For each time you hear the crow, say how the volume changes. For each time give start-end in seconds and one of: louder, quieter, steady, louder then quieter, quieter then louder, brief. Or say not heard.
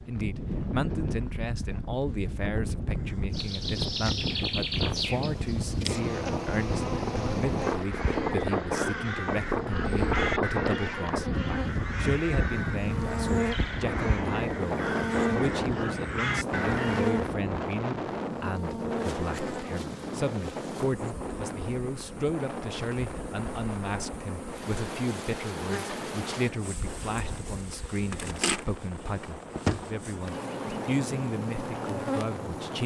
7.7-17.2 steady.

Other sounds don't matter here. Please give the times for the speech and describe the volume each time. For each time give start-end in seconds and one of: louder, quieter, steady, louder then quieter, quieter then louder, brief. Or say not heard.
0.1-32.8 steady.